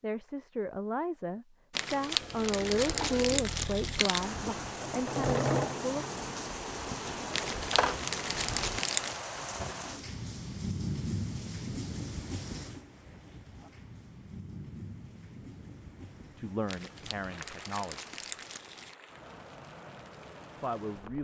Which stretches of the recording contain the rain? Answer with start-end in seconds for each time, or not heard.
4.2-21.2.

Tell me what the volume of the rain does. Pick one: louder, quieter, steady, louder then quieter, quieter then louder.
quieter.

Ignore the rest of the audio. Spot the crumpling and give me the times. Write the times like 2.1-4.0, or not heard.
1.7-4.3, 7.3-9.2, 16.6-18.9.